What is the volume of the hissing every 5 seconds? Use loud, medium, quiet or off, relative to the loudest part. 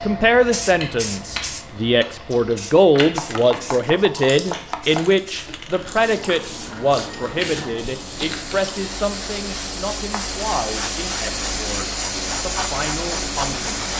medium, medium, loud.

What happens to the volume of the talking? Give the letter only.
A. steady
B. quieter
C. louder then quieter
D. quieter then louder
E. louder
B.